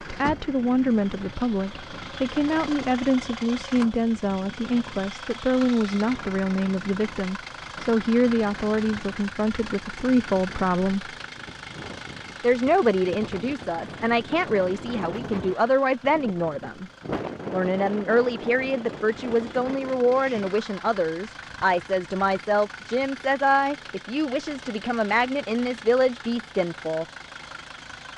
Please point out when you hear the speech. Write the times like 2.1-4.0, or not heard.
0.1-11.1, 12.4-16.9, 17.5-27.1.